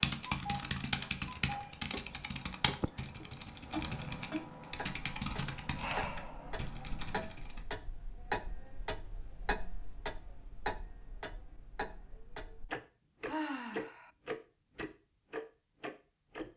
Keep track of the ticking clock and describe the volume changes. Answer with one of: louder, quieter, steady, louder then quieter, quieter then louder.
louder.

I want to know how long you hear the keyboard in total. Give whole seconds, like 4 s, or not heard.
8 s.